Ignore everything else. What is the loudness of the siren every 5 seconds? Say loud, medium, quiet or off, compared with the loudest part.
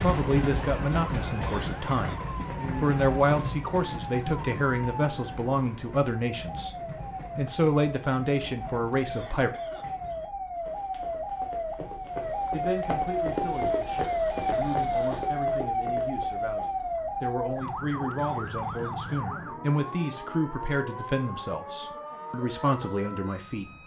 medium, medium, loud, loud, medium.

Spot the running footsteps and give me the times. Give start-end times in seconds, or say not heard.
10.6-16.8.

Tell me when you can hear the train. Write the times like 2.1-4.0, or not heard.
0.0-10.3.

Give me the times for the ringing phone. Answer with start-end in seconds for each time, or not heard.
not heard.